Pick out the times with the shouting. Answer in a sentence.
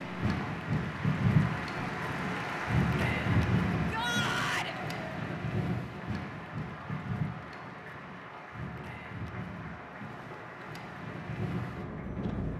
The shouting can be heard from 3.7 to 4.8 s.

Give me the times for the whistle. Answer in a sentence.
You can't hear the whistle here.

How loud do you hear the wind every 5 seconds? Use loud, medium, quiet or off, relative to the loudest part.
loud, medium, medium.